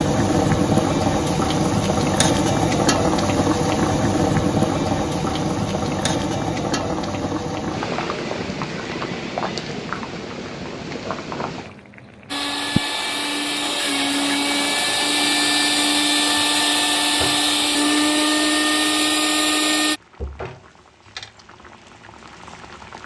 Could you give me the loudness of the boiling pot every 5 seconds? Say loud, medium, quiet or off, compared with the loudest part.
loud, medium, quiet, quiet, quiet.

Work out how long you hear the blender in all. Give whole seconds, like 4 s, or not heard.
8 s.